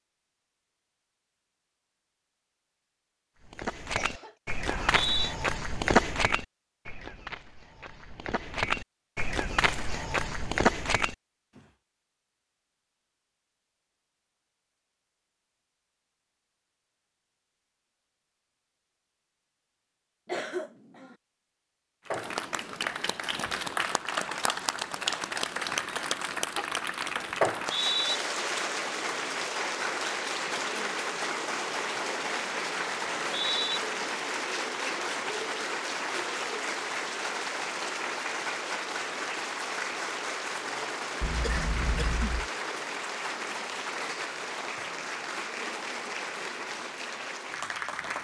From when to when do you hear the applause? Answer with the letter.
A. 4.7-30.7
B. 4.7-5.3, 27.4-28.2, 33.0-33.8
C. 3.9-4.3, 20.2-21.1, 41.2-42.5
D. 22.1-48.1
D.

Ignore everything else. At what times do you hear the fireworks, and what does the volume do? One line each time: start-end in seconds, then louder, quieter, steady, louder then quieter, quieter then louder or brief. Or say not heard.
not heard.